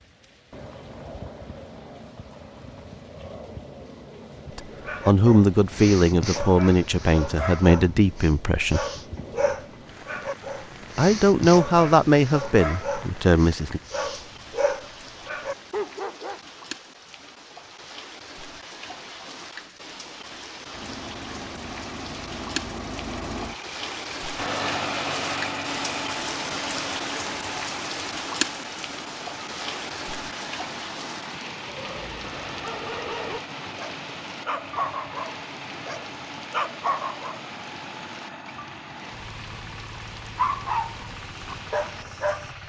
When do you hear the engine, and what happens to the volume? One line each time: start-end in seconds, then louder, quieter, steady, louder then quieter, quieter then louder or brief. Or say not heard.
20.7-42.6 quieter.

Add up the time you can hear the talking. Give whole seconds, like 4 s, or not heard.
7 s.